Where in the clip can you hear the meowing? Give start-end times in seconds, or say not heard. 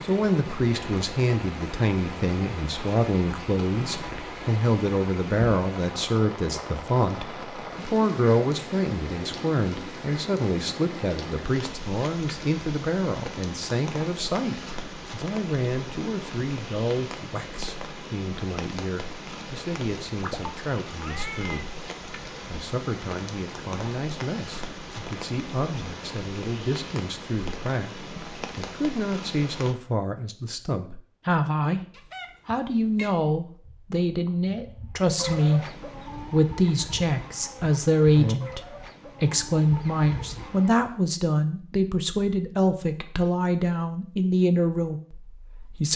3.8-4.5, 20.1-21.6, 31.9-33.1.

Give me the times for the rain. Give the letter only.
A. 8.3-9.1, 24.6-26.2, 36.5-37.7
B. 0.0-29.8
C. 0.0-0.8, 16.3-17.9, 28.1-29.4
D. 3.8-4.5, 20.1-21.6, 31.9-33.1
B.